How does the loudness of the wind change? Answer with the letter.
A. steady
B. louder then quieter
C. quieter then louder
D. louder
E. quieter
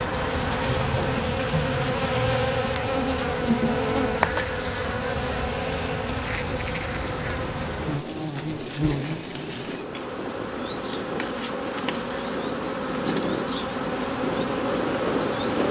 D.